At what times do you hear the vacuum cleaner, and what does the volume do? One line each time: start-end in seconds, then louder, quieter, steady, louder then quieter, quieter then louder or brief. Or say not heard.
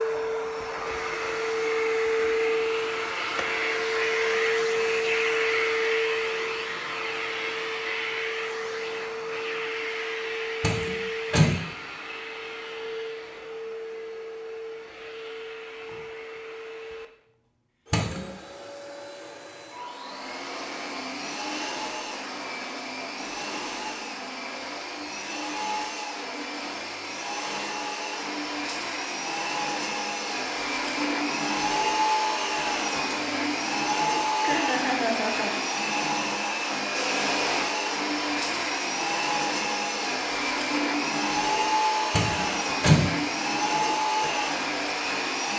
0.0-45.5 quieter then louder.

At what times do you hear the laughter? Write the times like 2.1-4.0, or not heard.
34.4-35.6.